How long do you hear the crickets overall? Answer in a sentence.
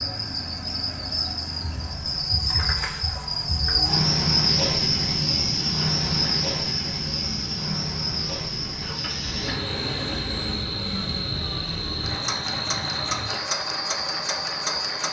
You can hear the crickets for 15 seconds altogether.